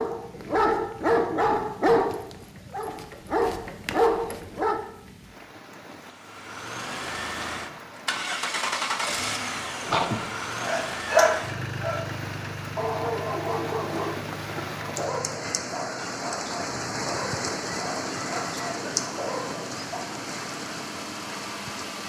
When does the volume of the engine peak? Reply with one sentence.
The loudest moment of the engine is at 9 seconds.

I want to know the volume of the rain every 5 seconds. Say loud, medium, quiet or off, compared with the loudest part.
quiet, quiet, medium, loud, medium.